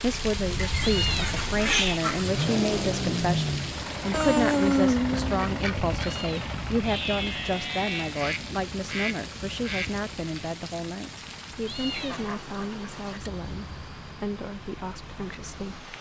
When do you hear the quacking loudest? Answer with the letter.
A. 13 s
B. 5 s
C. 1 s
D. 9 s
B.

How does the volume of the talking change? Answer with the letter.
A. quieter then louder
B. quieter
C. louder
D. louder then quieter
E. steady
B.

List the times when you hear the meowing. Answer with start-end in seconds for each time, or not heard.
0.8-2.0, 6.0-8.2, 11.7-12.3.